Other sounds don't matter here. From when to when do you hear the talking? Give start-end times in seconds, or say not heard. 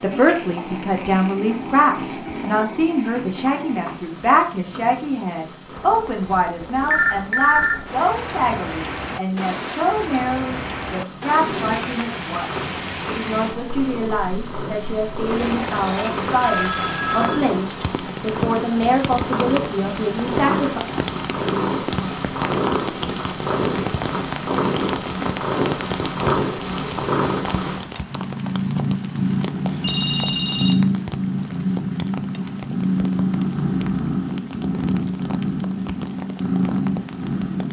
0.0-20.8.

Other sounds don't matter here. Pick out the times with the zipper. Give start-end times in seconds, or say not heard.
not heard.